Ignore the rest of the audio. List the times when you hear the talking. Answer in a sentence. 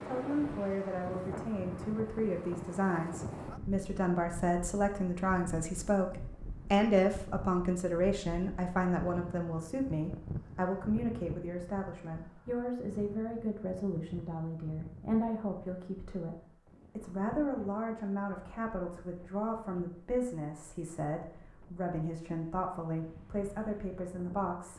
The talking can be heard from 0.0 to 24.7 s.